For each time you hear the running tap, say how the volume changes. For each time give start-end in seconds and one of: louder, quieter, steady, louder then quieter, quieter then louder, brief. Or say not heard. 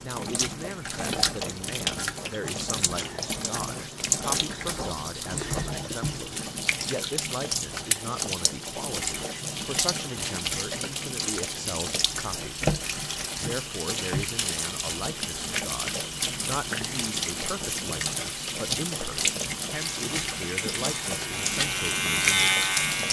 0.0-23.0 steady.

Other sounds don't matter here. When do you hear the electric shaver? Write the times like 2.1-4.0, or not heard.
19.7-23.0.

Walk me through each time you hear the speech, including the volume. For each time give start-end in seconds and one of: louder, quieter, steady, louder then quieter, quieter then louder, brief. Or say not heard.
0.0-12.6 steady
13.3-22.6 steady.